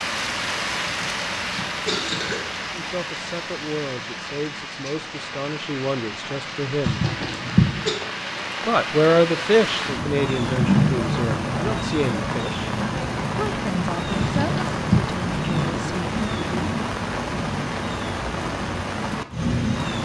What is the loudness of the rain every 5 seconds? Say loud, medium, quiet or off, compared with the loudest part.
medium, medium, loud, loud.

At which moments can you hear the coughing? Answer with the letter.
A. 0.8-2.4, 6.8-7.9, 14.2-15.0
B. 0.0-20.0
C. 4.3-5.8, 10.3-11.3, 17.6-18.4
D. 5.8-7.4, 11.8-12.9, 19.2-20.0
A.